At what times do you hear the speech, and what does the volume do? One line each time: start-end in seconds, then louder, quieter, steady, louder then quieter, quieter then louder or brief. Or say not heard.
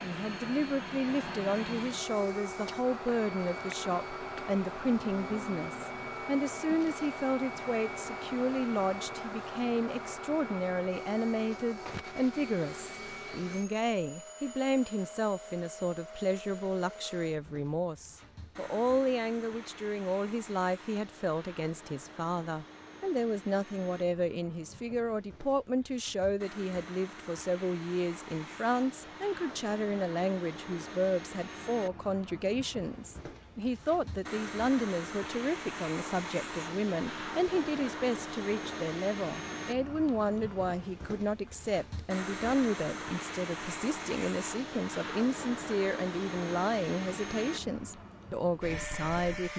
0.0-49.5 steady.